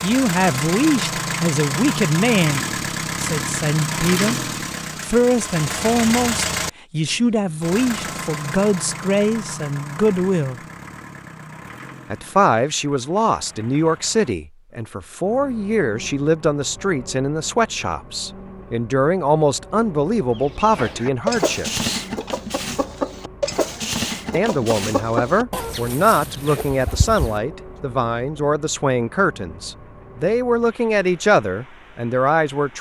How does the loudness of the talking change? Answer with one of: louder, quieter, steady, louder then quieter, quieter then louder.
steady.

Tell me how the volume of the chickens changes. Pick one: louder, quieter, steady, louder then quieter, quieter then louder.
quieter.